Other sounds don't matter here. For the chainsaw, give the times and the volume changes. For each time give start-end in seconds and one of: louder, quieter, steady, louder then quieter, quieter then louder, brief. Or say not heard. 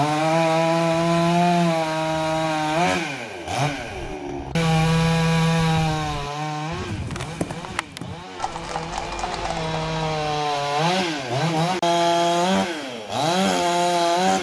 0.0-14.3 quieter then louder.